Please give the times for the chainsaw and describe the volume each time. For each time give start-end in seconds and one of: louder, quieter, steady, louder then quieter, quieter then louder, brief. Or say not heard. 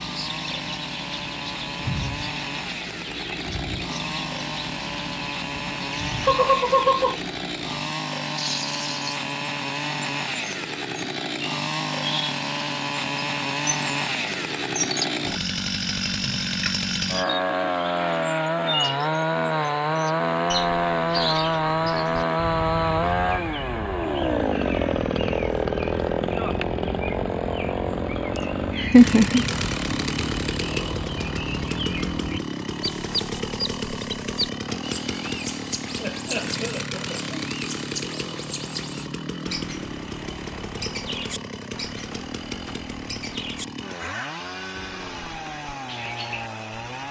0.0-47.0 louder then quieter.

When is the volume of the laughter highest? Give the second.
29 s.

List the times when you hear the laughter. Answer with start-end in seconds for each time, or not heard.
6.2-7.2, 28.4-29.4, 36.0-37.4.